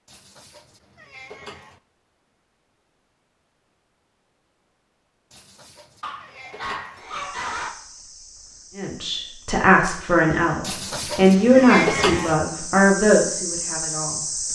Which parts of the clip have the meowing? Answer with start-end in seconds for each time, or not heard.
0.1-1.8, 5.3-7.0, 10.6-12.3.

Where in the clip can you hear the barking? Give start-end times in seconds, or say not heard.
6.0-7.8.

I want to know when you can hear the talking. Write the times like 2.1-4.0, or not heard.
8.8-14.2.